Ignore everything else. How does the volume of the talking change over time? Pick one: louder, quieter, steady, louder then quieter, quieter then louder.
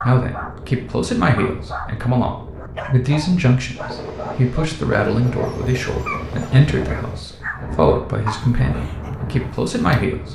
steady.